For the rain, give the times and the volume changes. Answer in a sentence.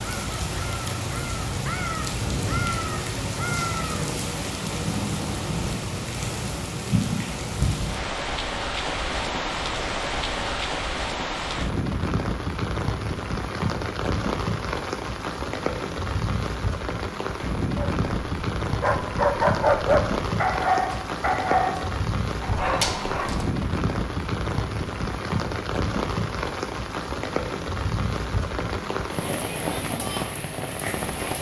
The rain can be heard from 0.0 to 31.3 s, at a steady volume.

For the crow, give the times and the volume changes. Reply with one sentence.
The crow can be heard from 0.0 to 4.0 s, getting louder.